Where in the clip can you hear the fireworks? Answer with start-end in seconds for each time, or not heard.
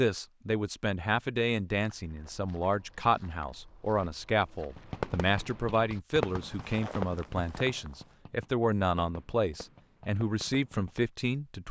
4.8-11.1.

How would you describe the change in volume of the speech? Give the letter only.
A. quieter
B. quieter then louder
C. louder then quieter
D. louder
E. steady
E.